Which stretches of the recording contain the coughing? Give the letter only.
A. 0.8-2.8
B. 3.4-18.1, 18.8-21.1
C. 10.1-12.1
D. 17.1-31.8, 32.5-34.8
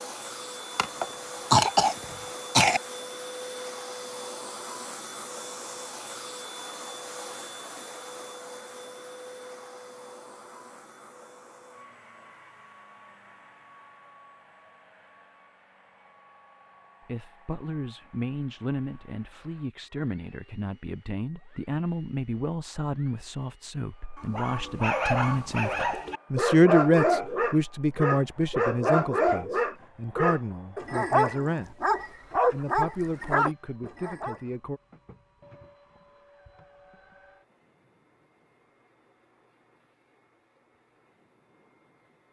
A.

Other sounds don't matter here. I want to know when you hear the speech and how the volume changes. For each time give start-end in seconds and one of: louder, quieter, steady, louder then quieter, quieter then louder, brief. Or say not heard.
17.1-31.8 louder then quieter
32.5-34.8 brief.